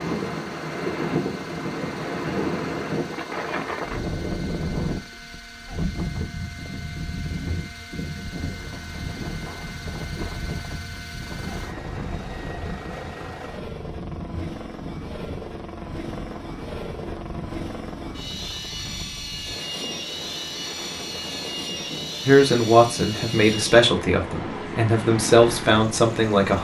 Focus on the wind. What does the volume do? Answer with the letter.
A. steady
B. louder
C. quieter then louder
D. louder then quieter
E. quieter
E.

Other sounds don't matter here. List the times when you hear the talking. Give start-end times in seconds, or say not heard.
22.2-26.5.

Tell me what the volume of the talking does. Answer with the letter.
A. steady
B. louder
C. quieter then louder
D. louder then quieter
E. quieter
C.